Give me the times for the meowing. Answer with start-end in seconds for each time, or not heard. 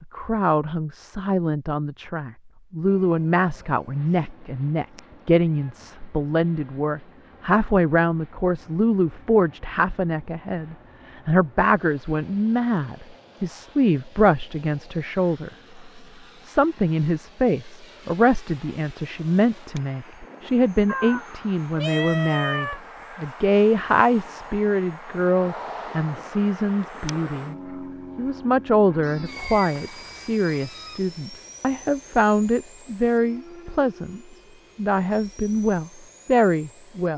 4.2-5.7, 20.9-22.8, 29.0-31.0.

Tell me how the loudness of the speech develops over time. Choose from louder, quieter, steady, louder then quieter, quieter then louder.
steady.